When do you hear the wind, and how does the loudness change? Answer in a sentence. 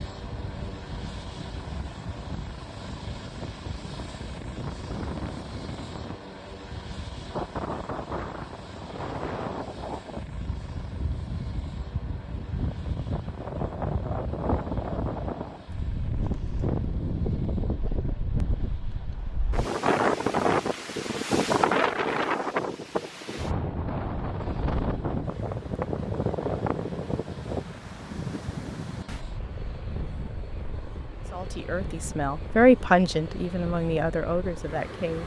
The wind can be heard from 0.0 to 35.2 s, getting louder then quieter.